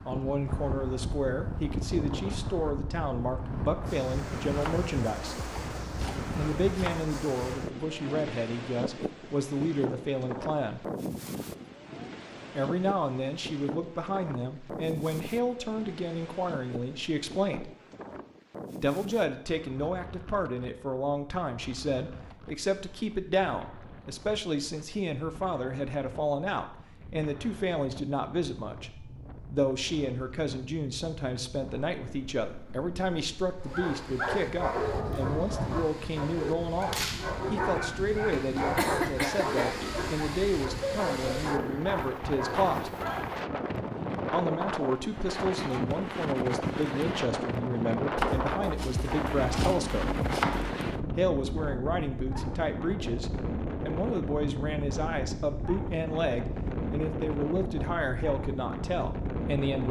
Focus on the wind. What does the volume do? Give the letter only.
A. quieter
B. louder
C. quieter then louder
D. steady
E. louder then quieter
C.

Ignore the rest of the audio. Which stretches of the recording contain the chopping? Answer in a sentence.
The chopping can be heard from 4.6 to 7.2 s and from 48.1 to 50.8 s.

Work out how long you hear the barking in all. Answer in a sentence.
You can hear the barking for 10 seconds altogether.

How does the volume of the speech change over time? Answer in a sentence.
The loudness of the speech stays about the same.